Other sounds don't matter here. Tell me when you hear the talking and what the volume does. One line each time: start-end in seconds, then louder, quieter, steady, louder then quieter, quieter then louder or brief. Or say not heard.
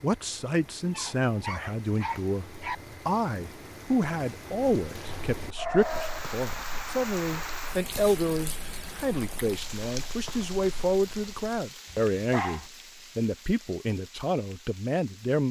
0.0-15.4 steady.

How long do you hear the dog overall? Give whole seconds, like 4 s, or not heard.
4 s.